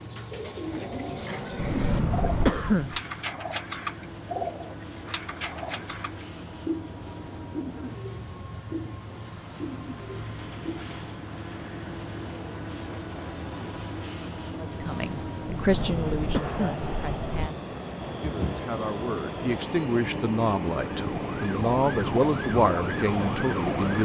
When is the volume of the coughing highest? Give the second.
3 s.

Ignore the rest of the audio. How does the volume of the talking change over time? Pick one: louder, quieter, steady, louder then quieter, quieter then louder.
quieter then louder.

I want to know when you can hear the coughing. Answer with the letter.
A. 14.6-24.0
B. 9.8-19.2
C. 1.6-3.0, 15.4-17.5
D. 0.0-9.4
C.